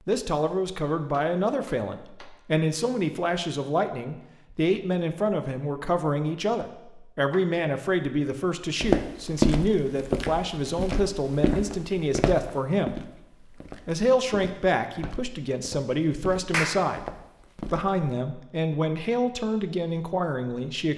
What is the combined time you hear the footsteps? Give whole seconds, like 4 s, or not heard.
9 s.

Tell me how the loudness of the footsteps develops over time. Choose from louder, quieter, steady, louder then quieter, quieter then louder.
quieter.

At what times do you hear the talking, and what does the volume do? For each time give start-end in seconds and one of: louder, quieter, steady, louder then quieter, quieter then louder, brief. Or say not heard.
0.1-20.9 steady.